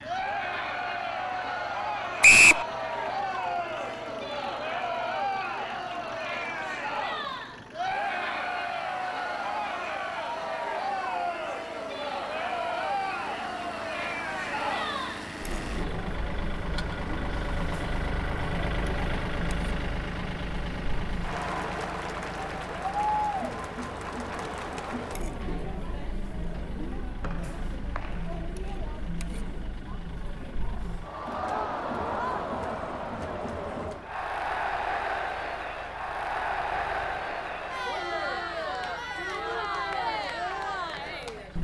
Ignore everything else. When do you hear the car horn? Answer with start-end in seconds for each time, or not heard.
not heard.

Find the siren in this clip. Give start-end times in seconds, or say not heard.
not heard.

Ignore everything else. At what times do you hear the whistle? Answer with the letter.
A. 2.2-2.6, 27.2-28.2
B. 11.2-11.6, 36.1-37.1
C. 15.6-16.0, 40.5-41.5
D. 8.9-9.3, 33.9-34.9
A.